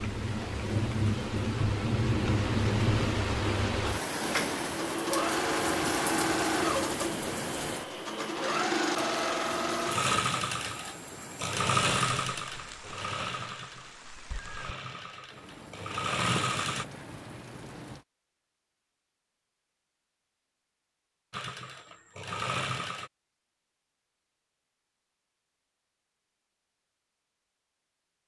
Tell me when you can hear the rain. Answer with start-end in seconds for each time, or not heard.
0.0-18.1.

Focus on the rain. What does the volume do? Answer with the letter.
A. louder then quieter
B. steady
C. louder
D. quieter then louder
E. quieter
E.